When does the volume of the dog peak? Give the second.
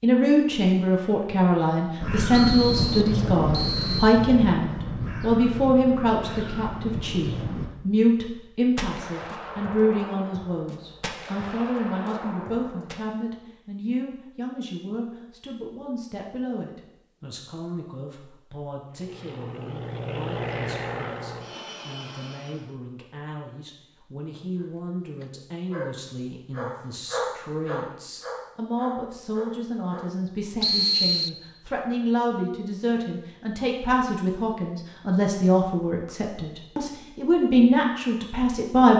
27 s.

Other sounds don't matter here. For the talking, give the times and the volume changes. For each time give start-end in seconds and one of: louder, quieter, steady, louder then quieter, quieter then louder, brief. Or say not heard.
0.0-38.9 quieter then louder.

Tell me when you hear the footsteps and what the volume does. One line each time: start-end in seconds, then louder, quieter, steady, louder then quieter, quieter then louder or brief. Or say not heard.
not heard.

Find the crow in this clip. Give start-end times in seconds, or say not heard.
2.0-7.7.